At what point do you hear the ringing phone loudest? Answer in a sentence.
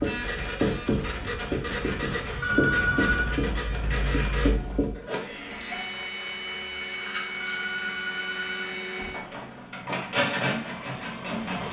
The volume of the ringing phone peaks at 3 seconds.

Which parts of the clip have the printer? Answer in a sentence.
The printer can be heard from 0.0 to 11.6 s.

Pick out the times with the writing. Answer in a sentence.
You can hear the writing from 0.0 to 5.0 s.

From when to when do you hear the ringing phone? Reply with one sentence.
The ringing phone can be heard from 2.4 to 3.4 s and from 7.4 to 8.7 s.